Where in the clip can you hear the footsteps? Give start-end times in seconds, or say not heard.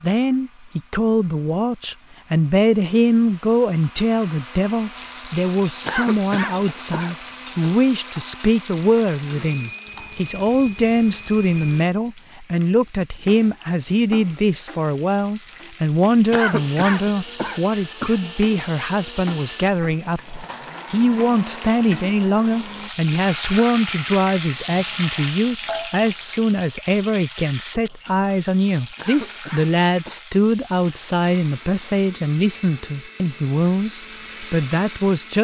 not heard.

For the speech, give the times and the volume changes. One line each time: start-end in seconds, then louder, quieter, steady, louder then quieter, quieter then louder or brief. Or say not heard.
0.0-35.3 steady.